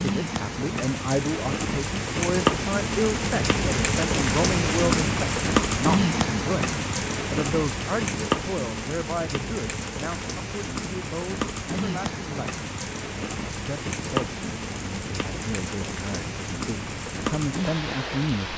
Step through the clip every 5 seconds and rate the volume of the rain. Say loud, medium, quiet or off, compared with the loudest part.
loud, loud, medium, medium.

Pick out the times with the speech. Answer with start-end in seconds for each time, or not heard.
0.0-12.6, 13.4-18.5.